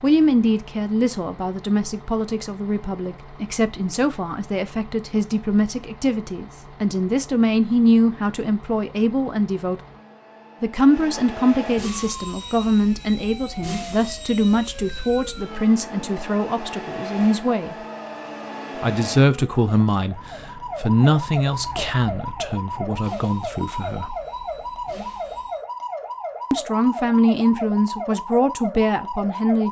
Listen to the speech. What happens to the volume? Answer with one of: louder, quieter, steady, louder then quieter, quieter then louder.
steady.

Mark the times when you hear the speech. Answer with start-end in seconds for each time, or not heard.
0.0-9.8, 10.6-17.8, 18.8-24.1, 26.5-29.6.